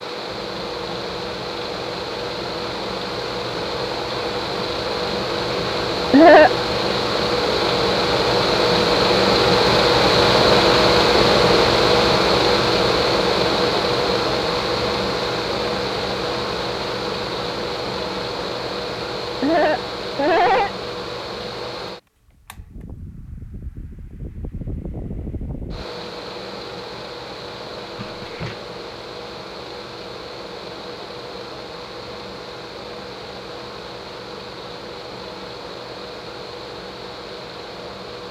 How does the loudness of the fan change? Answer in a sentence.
The loudness of the fan goes up, then down.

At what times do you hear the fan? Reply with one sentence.
You can hear the fan from 0.0 to 38.2 s.